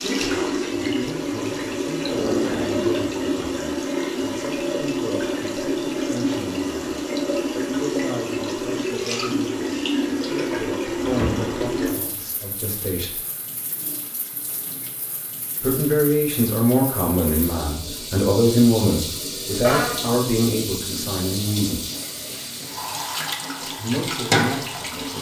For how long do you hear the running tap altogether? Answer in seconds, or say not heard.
25 s.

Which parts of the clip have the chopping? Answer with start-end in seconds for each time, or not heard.
not heard.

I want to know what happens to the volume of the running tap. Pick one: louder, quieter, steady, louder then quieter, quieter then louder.
quieter then louder.